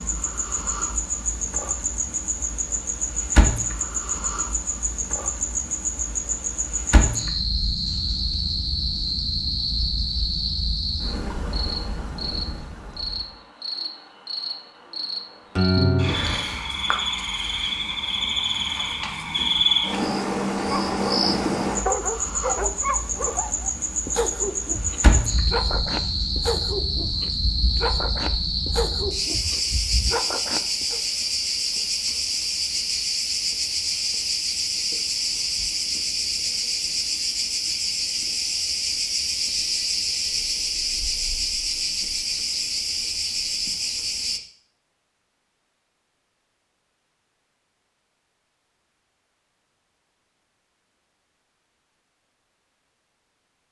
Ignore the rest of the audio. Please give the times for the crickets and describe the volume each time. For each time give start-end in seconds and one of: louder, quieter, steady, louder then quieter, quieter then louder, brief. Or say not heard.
0.0-44.4 steady.